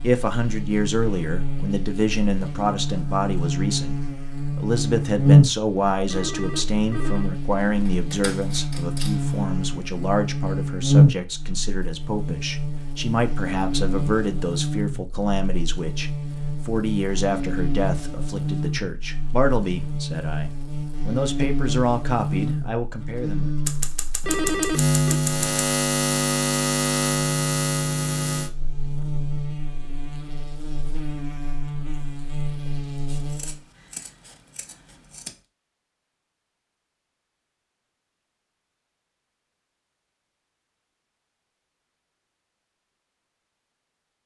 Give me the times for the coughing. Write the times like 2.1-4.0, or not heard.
not heard.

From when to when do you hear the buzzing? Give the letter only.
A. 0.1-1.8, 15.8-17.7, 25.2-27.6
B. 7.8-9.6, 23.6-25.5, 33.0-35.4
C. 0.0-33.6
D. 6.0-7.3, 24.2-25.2
C.